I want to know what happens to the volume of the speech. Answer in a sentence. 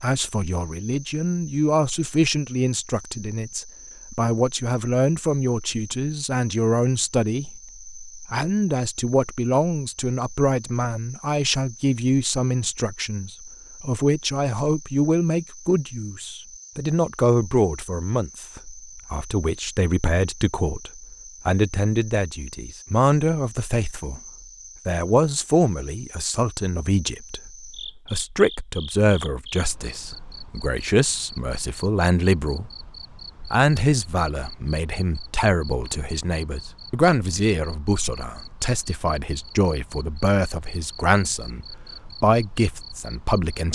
The volume of the speech stays about the same.